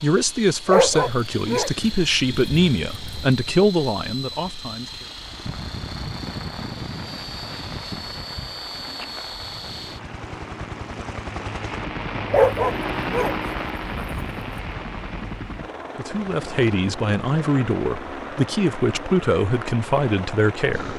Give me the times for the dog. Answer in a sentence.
You can hear the dog from 0.7 to 3.4 s and from 12.3 to 14.4 s.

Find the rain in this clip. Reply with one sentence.
The rain can be heard from 5.0 to 20.9 s.